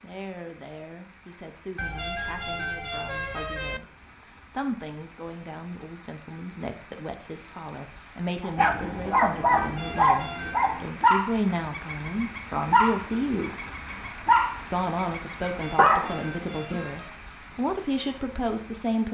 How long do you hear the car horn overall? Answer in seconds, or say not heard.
5 s.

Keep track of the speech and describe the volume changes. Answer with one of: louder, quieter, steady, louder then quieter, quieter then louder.
louder.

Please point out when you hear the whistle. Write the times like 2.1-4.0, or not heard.
not heard.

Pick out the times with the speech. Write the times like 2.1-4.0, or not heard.
0.0-3.9, 4.5-13.6, 14.7-19.1.